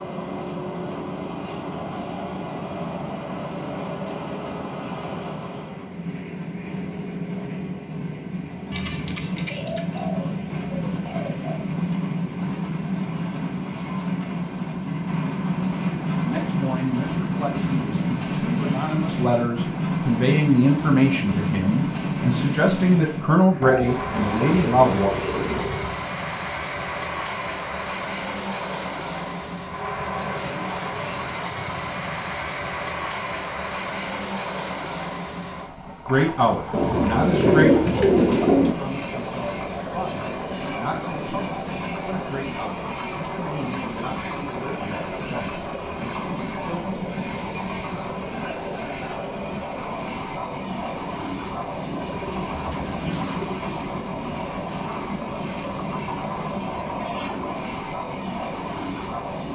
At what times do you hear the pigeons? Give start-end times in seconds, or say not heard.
8.7-11.7, 23.6-25.9, 36.7-38.8, 51.6-53.5.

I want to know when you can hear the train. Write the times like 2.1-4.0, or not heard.
0.0-59.4.